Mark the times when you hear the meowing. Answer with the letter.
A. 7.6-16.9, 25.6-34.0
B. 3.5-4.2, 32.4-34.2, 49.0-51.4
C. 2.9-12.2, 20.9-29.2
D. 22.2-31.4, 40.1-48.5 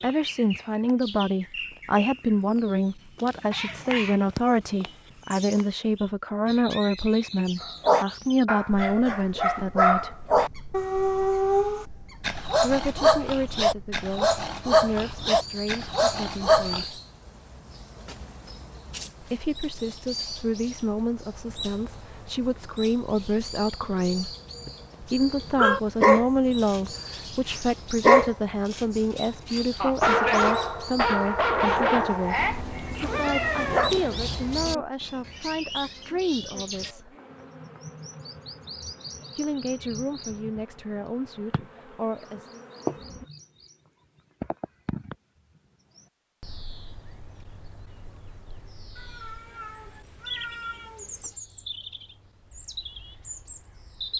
B.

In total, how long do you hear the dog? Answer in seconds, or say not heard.
18 s.